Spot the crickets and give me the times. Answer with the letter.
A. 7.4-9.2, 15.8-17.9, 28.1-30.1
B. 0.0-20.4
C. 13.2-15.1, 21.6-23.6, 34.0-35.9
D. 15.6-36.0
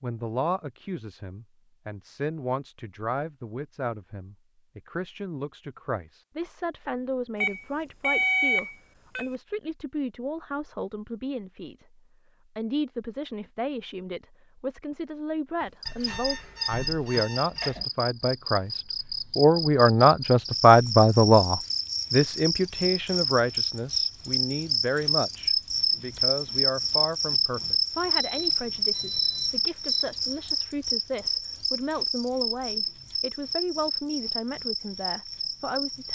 D.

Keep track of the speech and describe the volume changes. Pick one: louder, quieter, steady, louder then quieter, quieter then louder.
louder then quieter.